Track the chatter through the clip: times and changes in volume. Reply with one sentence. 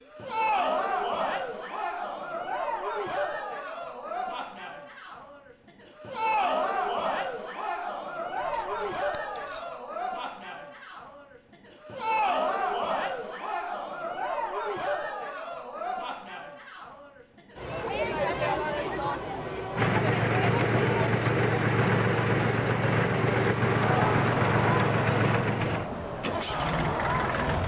The chatter can be heard from 0.1 to 27.6 s, at a steady volume.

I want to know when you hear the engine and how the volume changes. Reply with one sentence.
You can hear the engine from 19.8 to 27.6 s, getting quieter.